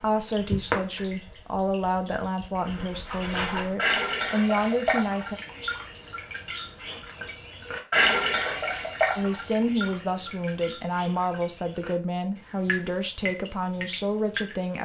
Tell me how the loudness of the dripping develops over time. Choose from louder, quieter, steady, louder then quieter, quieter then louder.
louder then quieter.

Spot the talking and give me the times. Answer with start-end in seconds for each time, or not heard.
0.0-5.3, 9.2-14.7.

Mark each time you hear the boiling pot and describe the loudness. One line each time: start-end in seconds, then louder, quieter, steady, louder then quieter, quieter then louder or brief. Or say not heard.
not heard.